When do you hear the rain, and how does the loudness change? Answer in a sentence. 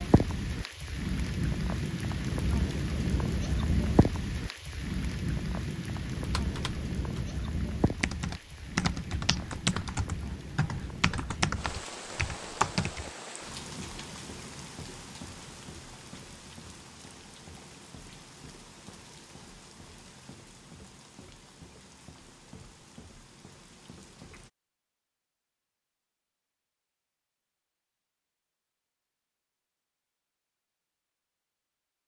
You can hear the rain from 0.0 to 24.5 s, getting quieter.